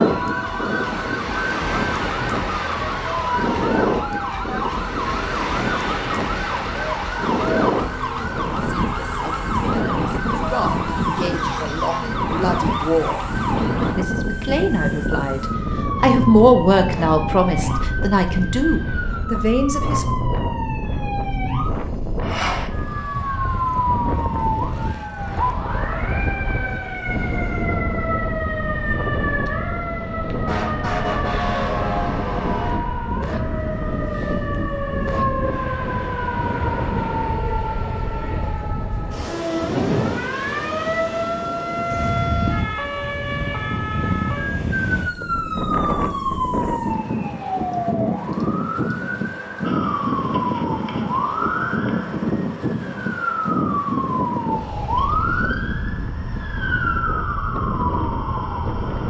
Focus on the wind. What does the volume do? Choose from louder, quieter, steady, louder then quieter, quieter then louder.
steady.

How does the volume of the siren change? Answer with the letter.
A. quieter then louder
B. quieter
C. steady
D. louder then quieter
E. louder
C.